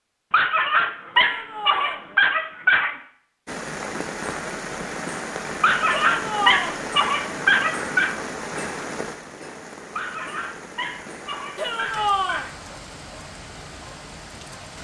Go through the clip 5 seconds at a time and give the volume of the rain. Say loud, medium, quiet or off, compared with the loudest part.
loud, loud, medium.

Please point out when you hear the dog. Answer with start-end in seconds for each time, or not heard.
0.3-3.0, 5.6-8.2, 9.9-12.6.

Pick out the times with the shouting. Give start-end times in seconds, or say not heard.
1.1-2.0, 6.0-6.8, 11.6-12.4.